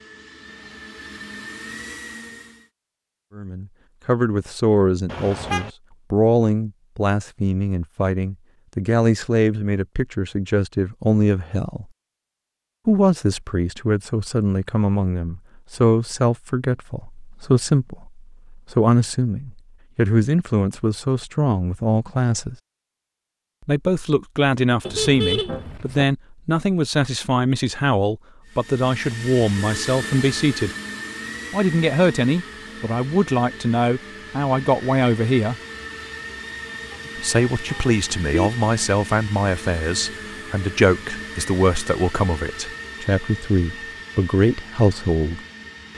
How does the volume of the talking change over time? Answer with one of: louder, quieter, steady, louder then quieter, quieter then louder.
steady.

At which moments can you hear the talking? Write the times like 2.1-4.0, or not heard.
3.4-11.8, 12.8-22.6, 23.6-30.7, 31.5-35.5, 37.1-45.4.